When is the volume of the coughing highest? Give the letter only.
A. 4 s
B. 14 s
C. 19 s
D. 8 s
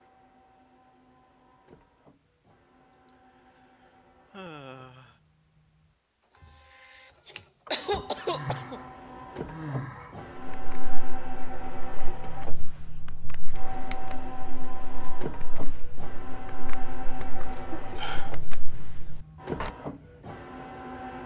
D.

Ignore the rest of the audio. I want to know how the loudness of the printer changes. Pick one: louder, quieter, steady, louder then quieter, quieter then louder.
louder.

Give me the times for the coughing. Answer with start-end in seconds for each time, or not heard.
7.7-8.8, 17.5-19.1.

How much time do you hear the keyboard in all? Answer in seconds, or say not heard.
9 s.